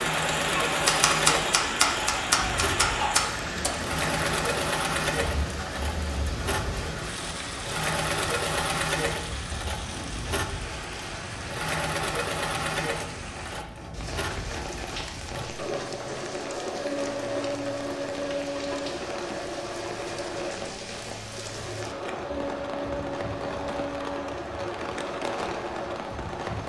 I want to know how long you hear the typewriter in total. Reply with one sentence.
The typewriter can be heard for 3 seconds in total.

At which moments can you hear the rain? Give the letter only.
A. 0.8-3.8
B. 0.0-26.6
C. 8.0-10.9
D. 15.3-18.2
B.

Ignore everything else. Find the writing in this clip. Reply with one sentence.
The writing can't be heard in this clip.